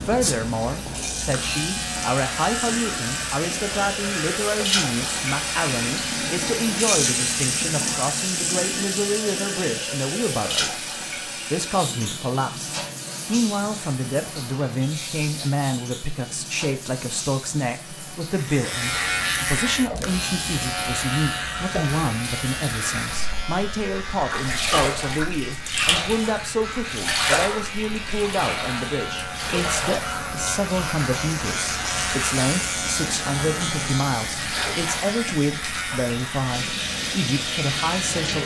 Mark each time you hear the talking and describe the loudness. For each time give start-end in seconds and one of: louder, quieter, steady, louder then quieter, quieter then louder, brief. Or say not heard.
0.0-38.4 steady.